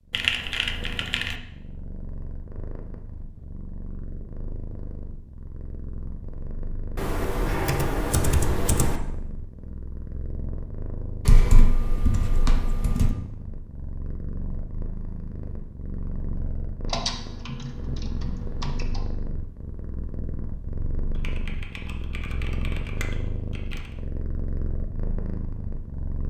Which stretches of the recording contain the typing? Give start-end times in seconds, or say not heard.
0.1-1.4, 7.0-9.0, 11.2-13.2, 16.9-19.0, 21.2-23.8.